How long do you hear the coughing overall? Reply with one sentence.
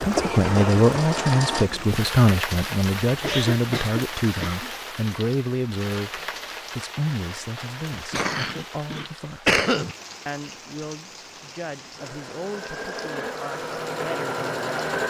The coughing can be heard for 4 seconds in total.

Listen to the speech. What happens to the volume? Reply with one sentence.
The volume of the speech goes down.